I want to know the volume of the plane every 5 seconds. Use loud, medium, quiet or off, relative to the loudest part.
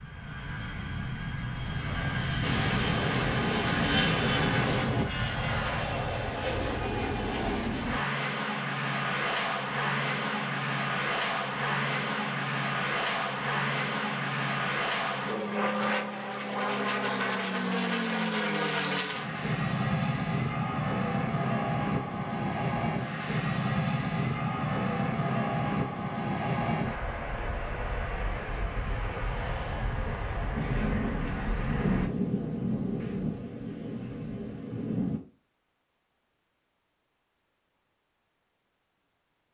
loud, loud, loud, loud, loud, loud, medium, off.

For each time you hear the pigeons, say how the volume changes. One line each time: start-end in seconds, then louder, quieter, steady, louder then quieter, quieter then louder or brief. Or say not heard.
not heard.